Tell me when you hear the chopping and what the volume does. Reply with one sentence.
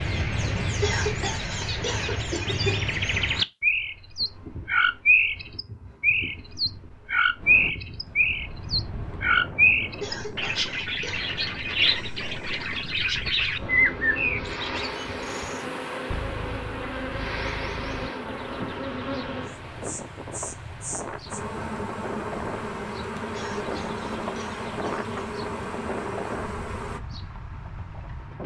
The chopping can't be heard in this clip.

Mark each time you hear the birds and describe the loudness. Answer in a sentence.
The birds can be heard from 0.0 to 28.4 s, getting quieter.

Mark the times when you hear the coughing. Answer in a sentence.
The coughing can be heard from 0.8 to 2.8 s, from 10.0 to 11.2 s and from 23.3 to 25.2 s.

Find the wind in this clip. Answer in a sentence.
The wind can be heard from 7.3 to 28.4 s.